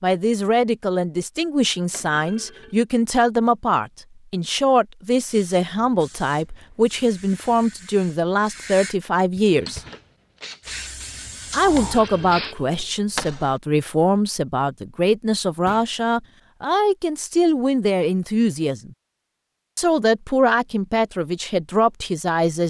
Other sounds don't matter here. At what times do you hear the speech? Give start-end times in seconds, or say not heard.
0.0-9.8, 11.5-18.9, 19.8-22.6.